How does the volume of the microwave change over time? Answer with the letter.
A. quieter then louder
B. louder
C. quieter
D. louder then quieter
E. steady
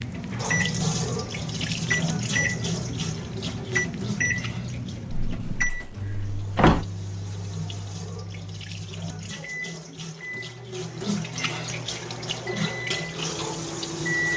C.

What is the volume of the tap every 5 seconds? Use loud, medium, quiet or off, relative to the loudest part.
loud, medium, loud.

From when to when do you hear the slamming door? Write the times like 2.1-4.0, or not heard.
5.1-6.8.